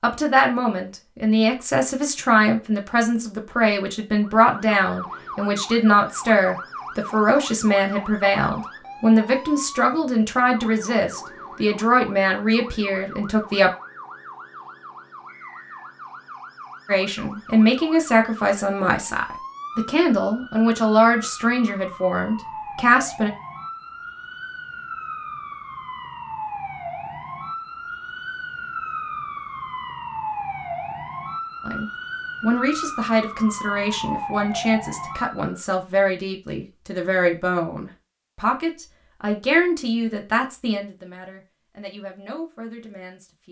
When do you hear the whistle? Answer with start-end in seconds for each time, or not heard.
15.2-15.9.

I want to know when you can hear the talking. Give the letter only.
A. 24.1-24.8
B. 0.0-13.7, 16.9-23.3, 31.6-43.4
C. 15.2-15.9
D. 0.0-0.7
B.